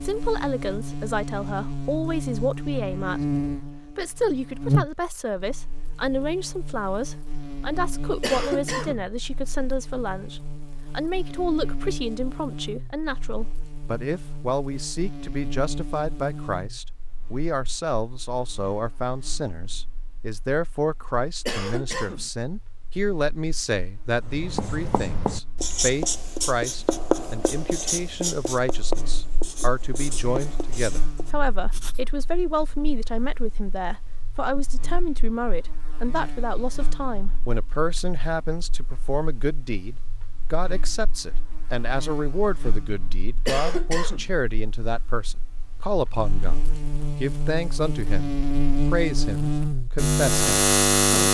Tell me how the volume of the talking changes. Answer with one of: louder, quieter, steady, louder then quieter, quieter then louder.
steady.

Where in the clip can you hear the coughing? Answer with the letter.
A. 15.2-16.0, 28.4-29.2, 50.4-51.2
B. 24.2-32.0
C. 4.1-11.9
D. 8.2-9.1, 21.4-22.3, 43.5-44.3
D.